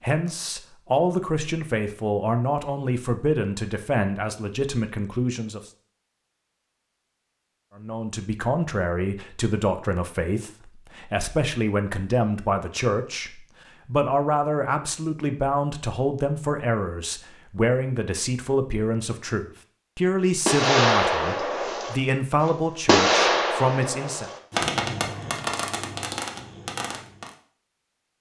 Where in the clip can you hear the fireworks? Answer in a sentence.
You can hear the fireworks from 20.4 to 27.3 s.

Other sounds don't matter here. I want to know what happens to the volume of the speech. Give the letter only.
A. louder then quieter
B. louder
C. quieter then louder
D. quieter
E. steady
E.